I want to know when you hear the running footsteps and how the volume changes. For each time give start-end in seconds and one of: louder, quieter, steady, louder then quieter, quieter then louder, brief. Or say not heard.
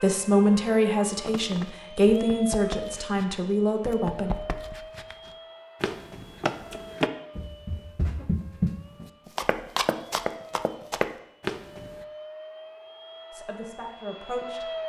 1.1-12.1 louder.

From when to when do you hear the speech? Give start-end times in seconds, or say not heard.
0.0-4.3, 13.3-14.7.